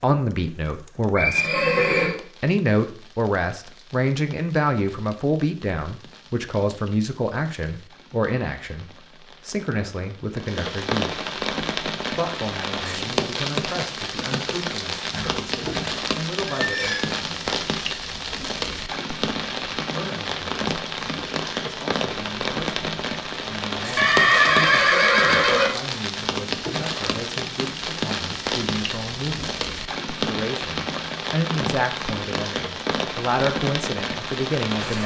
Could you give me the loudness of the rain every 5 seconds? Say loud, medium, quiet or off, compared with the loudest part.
quiet, quiet, loud, loud, loud, loud, loud.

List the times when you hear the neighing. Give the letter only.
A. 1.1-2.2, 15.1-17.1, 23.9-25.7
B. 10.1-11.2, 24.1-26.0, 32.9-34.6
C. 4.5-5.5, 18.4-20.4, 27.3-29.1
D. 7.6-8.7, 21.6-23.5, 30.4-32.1
A.